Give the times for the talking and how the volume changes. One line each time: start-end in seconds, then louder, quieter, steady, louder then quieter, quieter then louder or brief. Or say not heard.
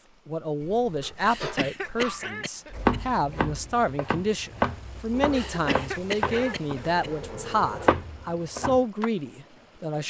0.2-10.0 steady.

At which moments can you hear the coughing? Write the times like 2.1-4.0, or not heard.
1.2-3.0, 5.3-7.1.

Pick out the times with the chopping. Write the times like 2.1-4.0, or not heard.
2.7-9.1.